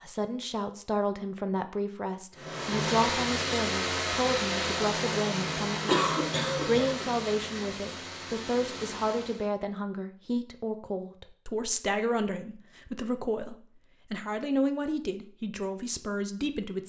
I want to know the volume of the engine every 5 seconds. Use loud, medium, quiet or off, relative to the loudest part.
loud, medium, off, off.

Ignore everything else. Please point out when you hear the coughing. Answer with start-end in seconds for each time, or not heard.
5.8-7.1.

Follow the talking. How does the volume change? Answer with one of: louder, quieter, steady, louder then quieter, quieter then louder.
steady.